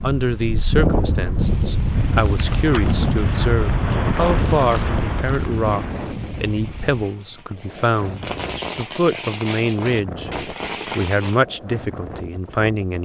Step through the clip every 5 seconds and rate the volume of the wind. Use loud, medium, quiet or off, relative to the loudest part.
loud, medium, quiet.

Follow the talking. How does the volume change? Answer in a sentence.
The loudness of the talking stays about the same.